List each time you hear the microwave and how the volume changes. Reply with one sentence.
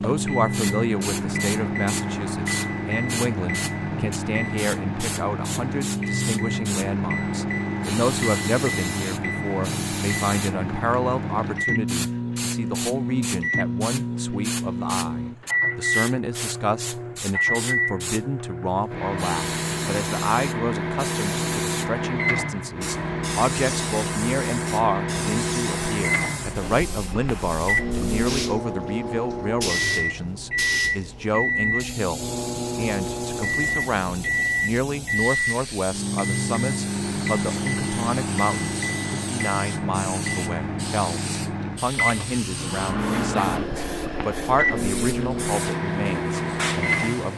The microwave can be heard from 0.0 to 47.3 s, at a steady volume.